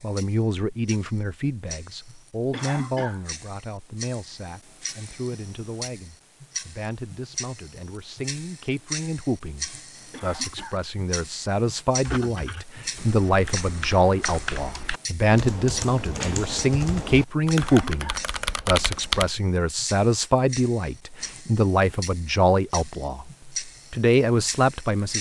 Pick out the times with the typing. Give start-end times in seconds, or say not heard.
12.1-19.3.